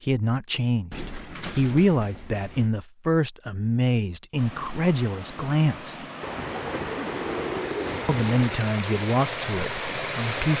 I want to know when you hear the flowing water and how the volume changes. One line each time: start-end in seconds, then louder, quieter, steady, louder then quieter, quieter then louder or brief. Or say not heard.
4.3-10.5 louder.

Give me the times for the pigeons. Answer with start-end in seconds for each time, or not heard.
0.9-2.7, 6.2-8.7.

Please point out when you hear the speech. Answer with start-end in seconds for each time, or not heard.
0.0-6.0, 8.1-10.5.